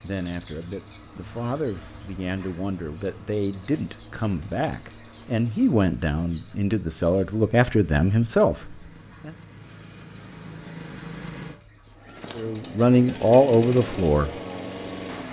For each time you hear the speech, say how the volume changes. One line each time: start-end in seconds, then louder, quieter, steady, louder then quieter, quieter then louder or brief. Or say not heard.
0.0-9.3 louder
12.3-14.3 brief.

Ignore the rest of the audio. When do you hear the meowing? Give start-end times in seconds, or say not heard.
not heard.